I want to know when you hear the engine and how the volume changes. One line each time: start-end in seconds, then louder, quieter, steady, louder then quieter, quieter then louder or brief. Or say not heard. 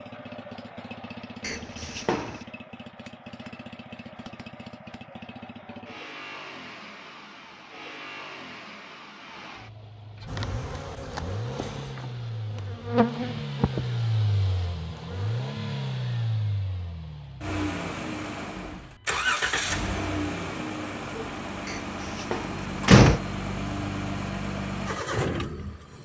0.0-26.0 louder.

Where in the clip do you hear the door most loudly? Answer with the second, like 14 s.
23 s.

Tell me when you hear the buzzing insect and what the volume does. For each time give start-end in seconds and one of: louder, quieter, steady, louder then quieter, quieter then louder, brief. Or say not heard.
10.2-15.4 louder then quieter.